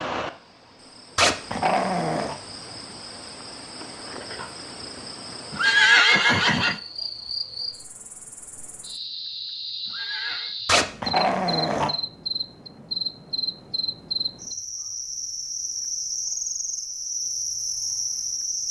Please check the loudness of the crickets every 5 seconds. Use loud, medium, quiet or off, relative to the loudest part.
medium, medium, loud, loud.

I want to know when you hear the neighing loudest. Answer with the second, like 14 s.
6 s.